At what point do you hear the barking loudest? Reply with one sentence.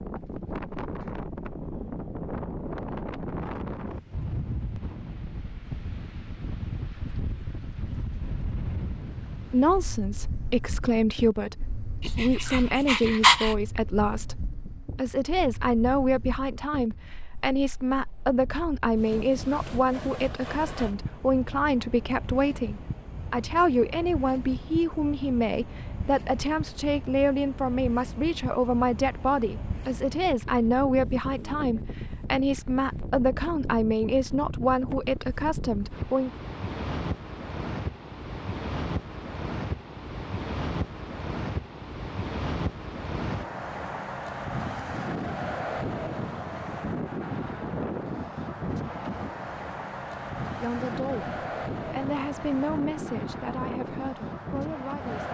The loudest moment of the barking is at 13 seconds.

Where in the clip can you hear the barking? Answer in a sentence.
The barking can be heard from 12.0 to 13.6 s.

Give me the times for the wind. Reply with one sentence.
You can hear the wind from 0.0 to 55.2 s.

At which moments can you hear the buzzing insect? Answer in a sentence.
You can't hear the buzzing insect here.